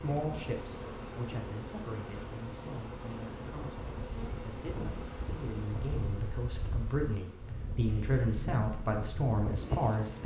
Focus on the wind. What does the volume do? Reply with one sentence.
The loudness of the wind goes up.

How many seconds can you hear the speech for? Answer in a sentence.
The speech can be heard for 10 seconds in total.